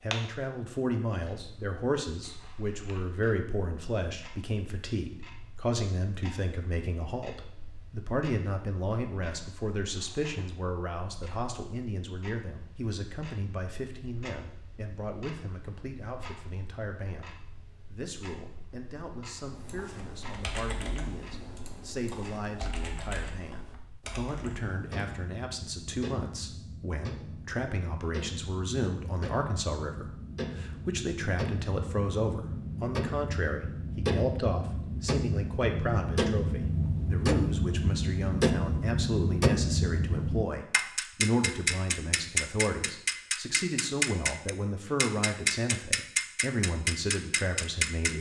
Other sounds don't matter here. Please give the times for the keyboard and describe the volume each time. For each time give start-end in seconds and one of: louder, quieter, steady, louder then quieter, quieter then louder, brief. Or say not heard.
19.4-25.1 steady.